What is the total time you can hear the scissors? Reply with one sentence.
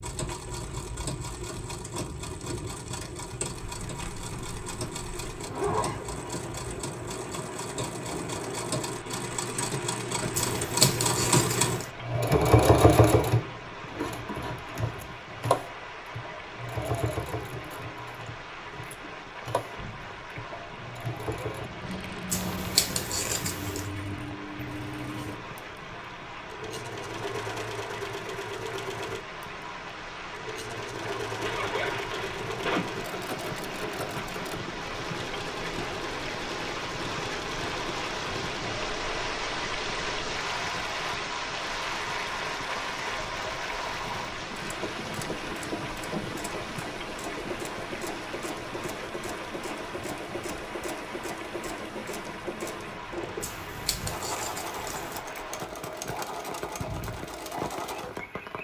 The scissors can be heard for 5 seconds in total.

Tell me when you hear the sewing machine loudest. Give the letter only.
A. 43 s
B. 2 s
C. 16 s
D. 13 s
D.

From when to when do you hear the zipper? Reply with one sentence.
The zipper can be heard from 5.5 to 6.2 s and from 31.4 to 33.0 s.